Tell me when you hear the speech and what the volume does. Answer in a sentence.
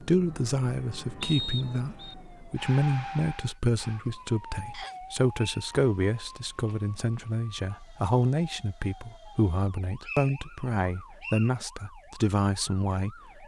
You can hear the speech from 0.0 to 13.4 s, at a steady volume.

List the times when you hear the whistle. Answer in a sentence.
You can hear the whistle from 1.2 to 2.1 s, from 4.7 to 5.7 s and from 10.0 to 11.5 s.